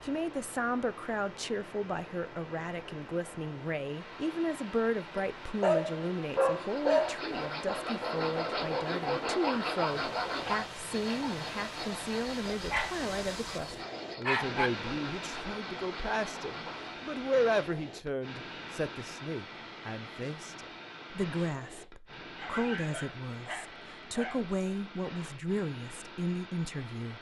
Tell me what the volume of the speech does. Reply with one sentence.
The loudness of the speech stays about the same.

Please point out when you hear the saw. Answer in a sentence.
You can hear the saw from 6.5 to 17.1 s.